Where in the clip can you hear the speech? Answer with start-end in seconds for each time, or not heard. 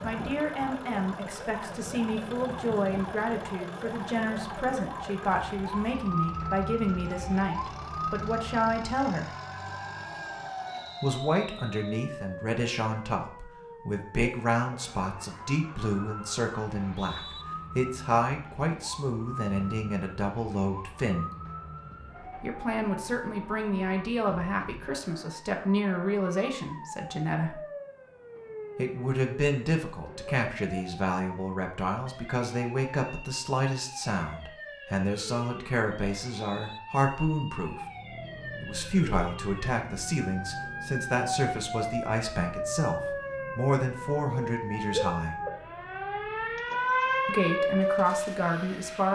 0.0-9.3, 11.0-21.4, 22.4-27.6, 28.8-37.9, 38.6-45.4, 47.2-49.1.